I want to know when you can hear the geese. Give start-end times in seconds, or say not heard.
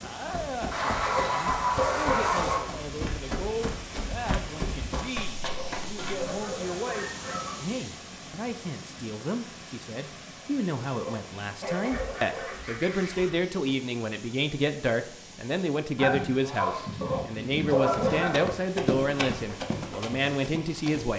0.7-2.6, 6.0-7.7, 11.6-13.4, 15.9-18.4.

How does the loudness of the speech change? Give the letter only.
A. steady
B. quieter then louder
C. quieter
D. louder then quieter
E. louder
E.